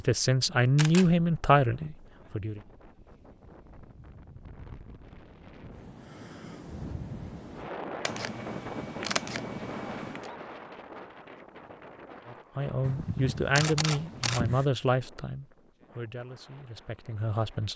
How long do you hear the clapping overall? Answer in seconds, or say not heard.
not heard.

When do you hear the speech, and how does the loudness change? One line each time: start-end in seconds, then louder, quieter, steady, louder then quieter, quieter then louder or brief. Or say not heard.
0.0-2.6 brief
12.2-17.7 quieter.